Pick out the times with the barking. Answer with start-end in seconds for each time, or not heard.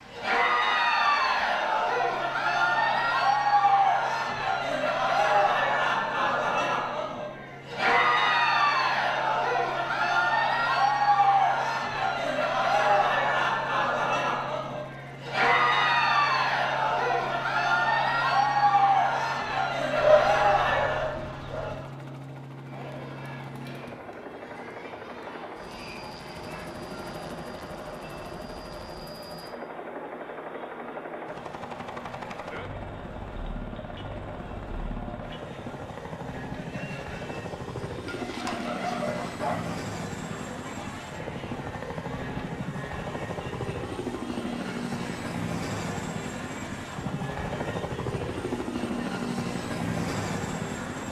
19.9-21.8, 38.0-39.8.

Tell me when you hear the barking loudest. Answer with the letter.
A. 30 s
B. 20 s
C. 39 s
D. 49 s
B.